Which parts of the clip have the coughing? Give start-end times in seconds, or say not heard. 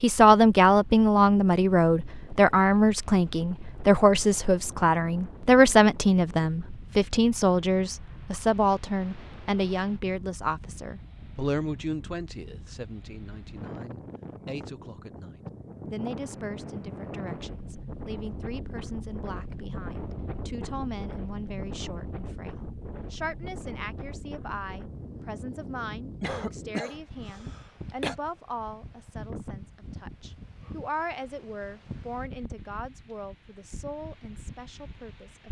26.2-28.1.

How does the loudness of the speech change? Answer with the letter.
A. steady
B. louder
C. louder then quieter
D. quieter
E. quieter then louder
D.